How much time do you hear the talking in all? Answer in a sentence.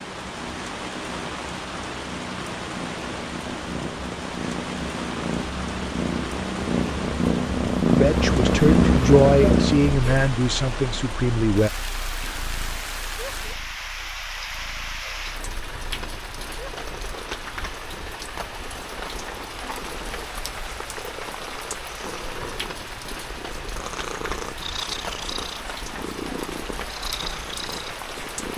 The talking can be heard for 4 seconds in total.